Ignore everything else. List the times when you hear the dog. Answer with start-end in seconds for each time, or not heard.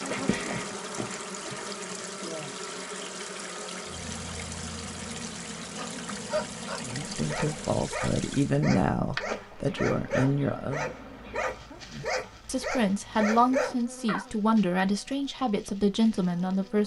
5.8-14.2.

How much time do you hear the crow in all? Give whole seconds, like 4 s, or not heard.
not heard.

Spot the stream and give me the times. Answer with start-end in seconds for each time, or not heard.
0.0-8.7.